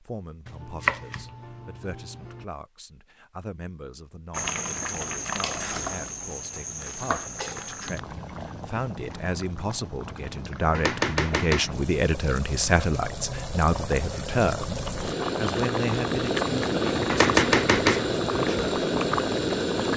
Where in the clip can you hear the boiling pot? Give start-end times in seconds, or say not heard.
4.3-19.9.